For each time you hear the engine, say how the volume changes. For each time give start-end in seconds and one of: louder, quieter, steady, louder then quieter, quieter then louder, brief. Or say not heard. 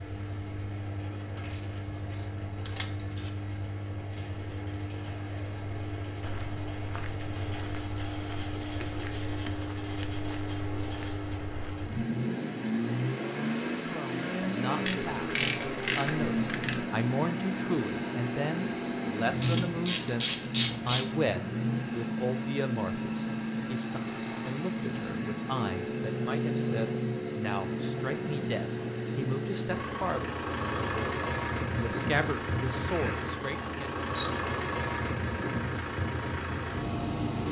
0.0-37.4 louder.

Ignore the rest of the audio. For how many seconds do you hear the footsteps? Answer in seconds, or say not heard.
6 s.